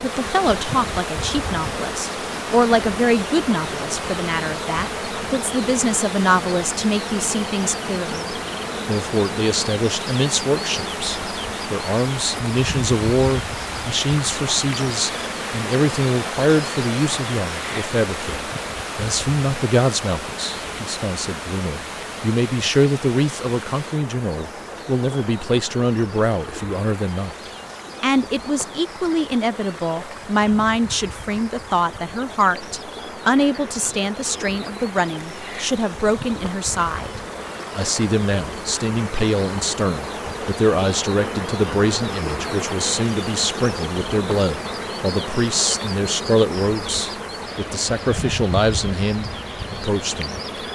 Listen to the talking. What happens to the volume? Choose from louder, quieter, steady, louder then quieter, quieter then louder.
steady.